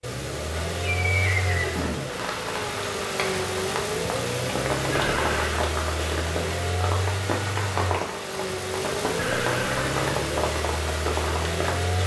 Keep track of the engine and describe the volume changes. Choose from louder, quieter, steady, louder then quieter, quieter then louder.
steady.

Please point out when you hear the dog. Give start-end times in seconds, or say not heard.
not heard.